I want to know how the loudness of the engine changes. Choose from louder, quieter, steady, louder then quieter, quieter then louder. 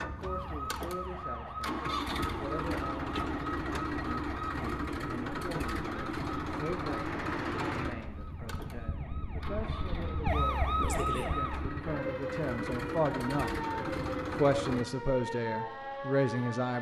quieter then louder.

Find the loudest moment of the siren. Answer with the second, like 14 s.
11 s.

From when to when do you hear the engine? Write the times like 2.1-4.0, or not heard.
0.0-14.8.